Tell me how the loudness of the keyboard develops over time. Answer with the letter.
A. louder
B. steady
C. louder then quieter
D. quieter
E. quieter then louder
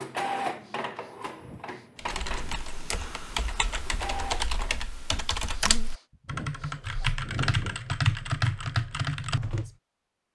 A.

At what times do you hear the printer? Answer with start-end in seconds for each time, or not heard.
0.0-4.8.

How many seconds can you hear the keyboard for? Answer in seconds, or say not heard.
8 s.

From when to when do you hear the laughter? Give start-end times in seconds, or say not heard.
not heard.